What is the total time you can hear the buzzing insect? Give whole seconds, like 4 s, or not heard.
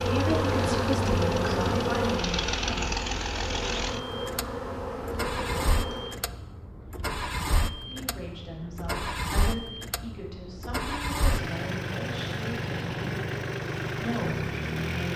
6 s.